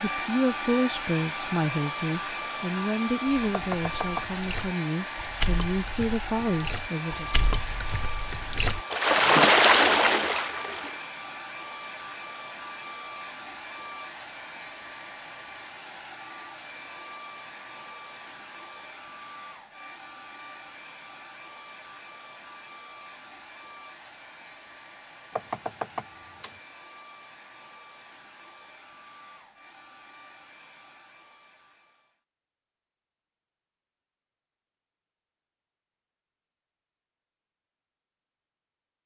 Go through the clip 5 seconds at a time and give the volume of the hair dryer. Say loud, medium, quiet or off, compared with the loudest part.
loud, loud, medium, medium, quiet, quiet, quiet, off.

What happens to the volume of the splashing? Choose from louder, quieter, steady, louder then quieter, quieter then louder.
quieter then louder.